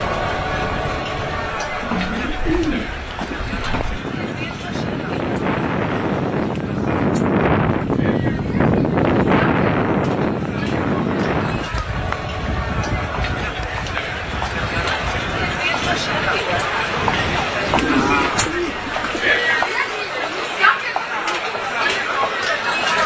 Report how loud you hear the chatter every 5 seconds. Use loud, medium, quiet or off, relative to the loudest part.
medium, quiet, medium, loud, loud.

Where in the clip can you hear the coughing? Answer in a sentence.
The coughing can't be heard in this clip.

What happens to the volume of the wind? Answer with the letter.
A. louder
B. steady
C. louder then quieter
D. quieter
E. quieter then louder
C.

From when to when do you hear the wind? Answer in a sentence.
The wind can be heard from 0.0 to 18.6 s.